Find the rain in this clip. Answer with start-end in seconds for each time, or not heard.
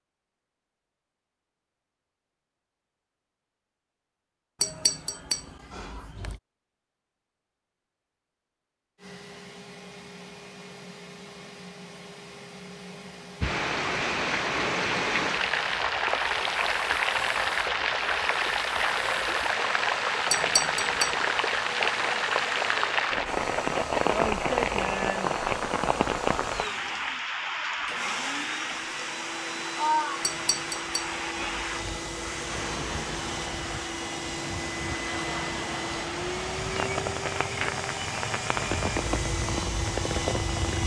13.4-40.8.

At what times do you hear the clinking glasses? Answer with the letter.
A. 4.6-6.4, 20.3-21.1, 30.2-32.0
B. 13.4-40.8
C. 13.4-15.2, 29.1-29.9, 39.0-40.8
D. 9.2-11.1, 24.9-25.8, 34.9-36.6
A.